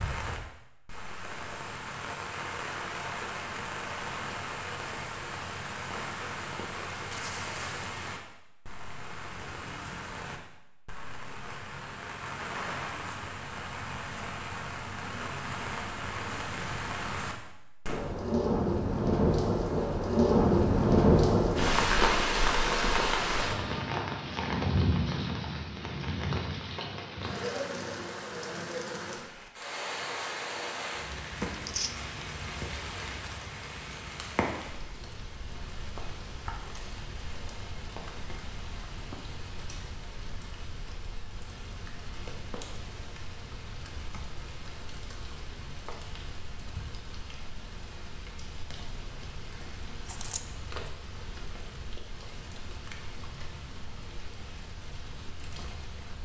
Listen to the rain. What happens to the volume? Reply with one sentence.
The loudness of the rain goes up, then down.